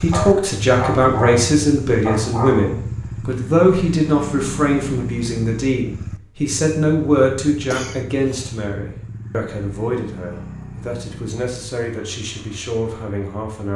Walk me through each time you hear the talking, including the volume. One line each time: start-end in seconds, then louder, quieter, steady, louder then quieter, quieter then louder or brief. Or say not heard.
0.0-13.7 quieter.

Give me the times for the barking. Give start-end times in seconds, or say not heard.
0.1-2.8.